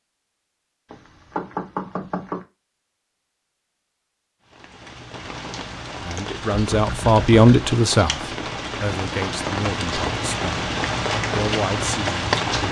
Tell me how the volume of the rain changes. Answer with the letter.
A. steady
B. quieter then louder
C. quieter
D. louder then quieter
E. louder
E.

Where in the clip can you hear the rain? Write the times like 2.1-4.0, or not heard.
4.5-12.6.